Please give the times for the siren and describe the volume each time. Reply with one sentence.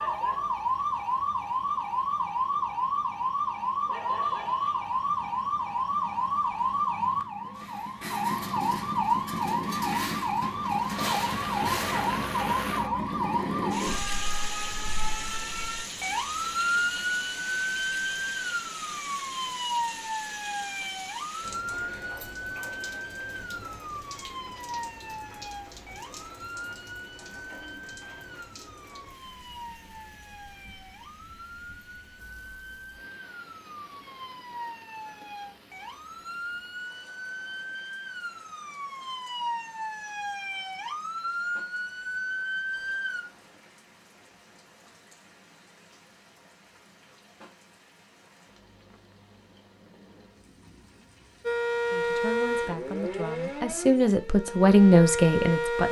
The siren can be heard from 0.0 to 43.2 s, getting quieter then louder; and from 51.5 to 55.8 s, getting quieter then louder.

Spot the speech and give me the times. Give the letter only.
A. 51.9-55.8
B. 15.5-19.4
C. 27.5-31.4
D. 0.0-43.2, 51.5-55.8
A.